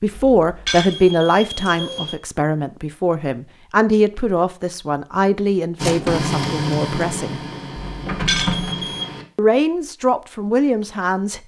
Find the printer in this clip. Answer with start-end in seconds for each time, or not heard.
5.8-9.2.